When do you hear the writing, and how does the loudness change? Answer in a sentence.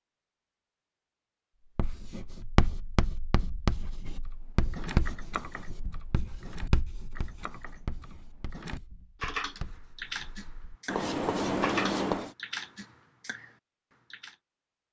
The writing can be heard from 1.8 to 12.3 s, getting quieter then louder.